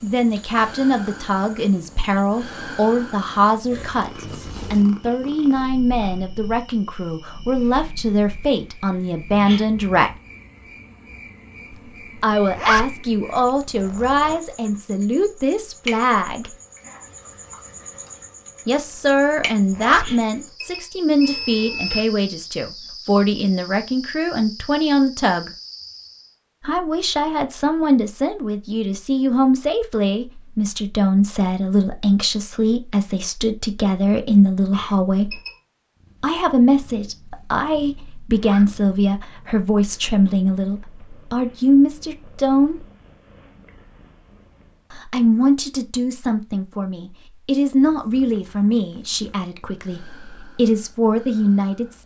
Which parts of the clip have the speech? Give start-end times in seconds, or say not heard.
0.0-10.1, 12.2-16.5, 18.6-25.5, 26.6-35.4, 36.2-42.9, 44.9-52.0.